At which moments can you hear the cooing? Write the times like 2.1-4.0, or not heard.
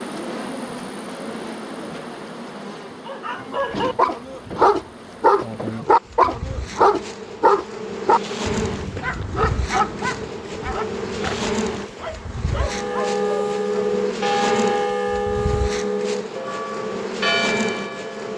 not heard.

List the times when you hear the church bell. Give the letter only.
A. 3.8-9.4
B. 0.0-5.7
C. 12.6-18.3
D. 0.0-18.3
C.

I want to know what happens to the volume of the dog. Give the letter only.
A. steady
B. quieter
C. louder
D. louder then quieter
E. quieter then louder
B.